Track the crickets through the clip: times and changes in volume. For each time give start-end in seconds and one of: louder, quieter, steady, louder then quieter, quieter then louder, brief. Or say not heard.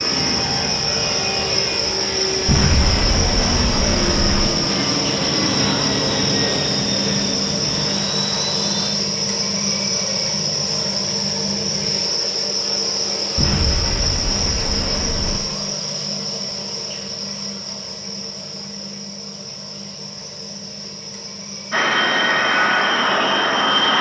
0.0-23.9 quieter.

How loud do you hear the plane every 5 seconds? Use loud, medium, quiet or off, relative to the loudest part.
medium, medium, off, off, loud.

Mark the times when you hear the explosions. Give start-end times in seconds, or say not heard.
2.5-4.5, 13.3-15.4.